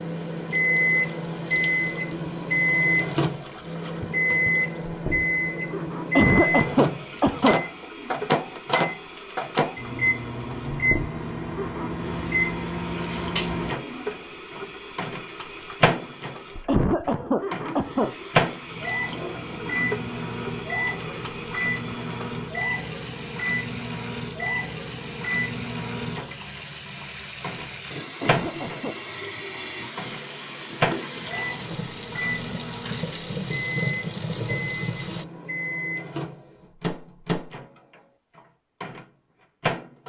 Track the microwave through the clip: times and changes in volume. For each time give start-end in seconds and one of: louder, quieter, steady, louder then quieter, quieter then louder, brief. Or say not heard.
0.0-40.0 quieter.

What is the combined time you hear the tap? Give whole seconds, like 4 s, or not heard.
35 s.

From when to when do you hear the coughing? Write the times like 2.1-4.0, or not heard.
6.2-7.6, 16.6-18.1, 28.2-29.0.